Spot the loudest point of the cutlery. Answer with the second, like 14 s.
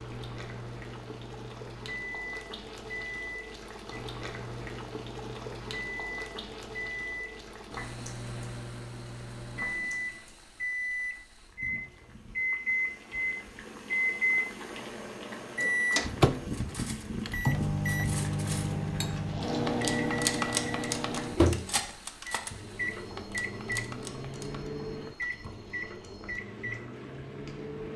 20 s.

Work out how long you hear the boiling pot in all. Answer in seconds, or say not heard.
28 s.